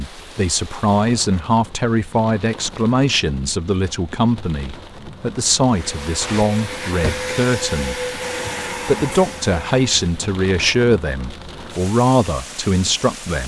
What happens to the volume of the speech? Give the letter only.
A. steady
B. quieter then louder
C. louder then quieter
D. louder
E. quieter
A.